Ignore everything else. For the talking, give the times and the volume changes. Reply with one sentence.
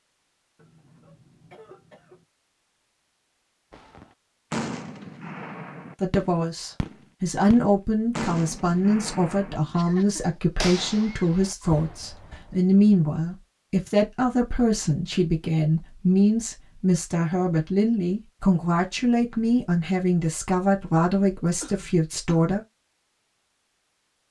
You can hear the talking from 6.0 to 22.6 s, at a steady volume.